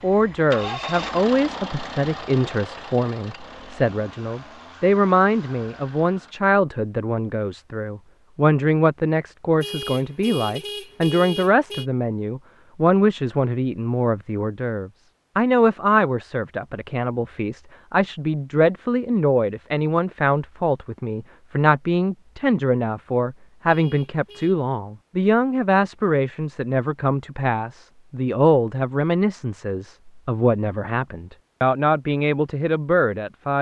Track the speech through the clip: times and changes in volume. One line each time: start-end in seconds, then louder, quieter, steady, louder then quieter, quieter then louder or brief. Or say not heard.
0.0-33.5 steady.